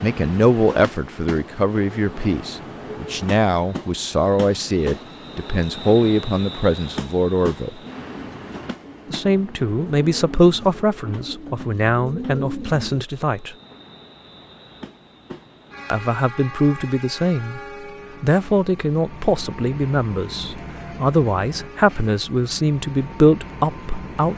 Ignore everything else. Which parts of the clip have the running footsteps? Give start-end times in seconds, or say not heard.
not heard.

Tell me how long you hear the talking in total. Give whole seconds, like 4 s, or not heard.
20 s.